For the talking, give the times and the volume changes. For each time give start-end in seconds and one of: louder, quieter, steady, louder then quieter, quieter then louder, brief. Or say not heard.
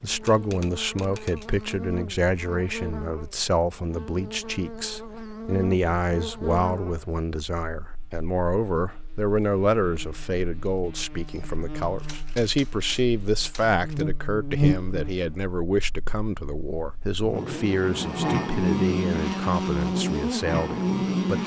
0.0-21.4 steady.